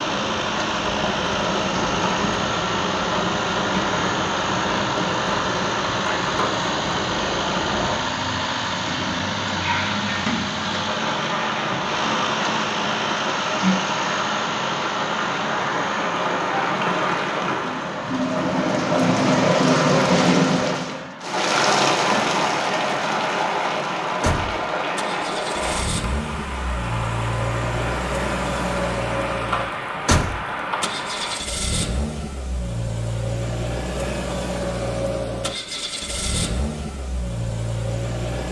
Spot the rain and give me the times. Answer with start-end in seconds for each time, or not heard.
0.0-31.4.